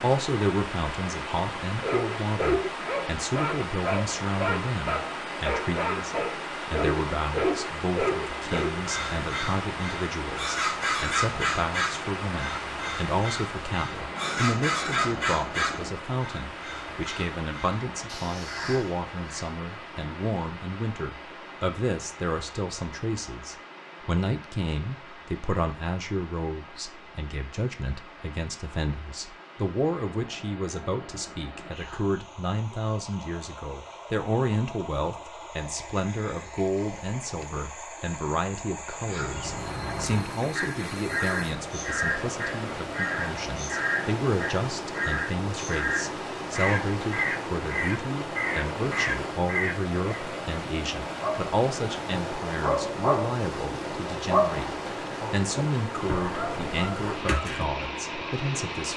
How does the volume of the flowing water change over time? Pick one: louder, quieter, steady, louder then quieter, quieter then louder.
quieter then louder.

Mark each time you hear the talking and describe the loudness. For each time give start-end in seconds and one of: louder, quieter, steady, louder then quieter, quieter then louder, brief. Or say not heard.
0.0-58.9 steady.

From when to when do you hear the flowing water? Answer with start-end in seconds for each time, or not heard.
0.0-58.9.